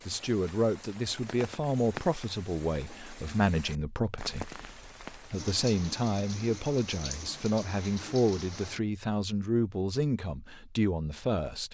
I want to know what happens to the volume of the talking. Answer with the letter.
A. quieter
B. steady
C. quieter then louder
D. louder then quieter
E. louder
B.